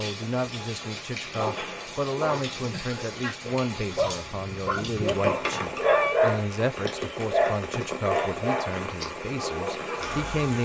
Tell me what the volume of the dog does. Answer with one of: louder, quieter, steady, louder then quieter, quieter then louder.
louder then quieter.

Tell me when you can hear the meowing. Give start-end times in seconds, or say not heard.
5.0-6.2.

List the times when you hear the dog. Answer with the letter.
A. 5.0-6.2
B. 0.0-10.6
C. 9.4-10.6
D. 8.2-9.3
B.